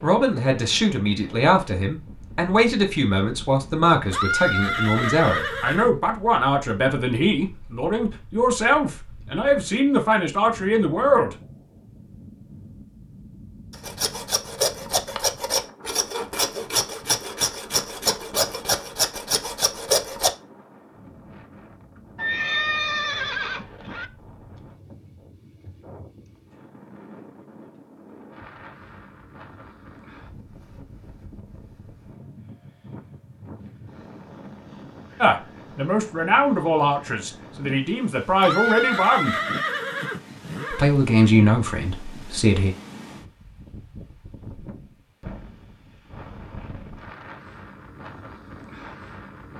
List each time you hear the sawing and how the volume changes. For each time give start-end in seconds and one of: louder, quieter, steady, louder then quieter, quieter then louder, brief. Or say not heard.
13.7-20.3 steady.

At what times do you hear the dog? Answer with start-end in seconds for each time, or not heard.
not heard.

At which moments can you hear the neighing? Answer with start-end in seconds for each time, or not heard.
4.0-5.9, 22.1-24.1, 38.3-40.9.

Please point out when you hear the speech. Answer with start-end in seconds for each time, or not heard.
0.0-11.3, 35.2-39.4, 40.7-42.8.